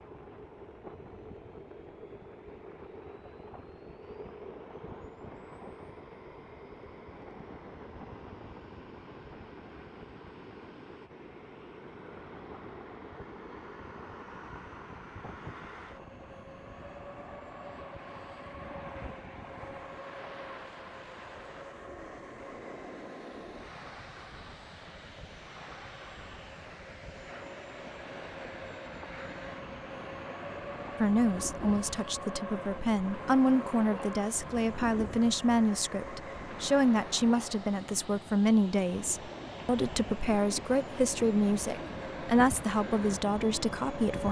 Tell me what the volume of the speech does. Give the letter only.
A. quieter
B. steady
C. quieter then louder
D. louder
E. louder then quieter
B.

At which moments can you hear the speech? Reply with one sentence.
The speech can be heard from 31.0 to 44.2 s.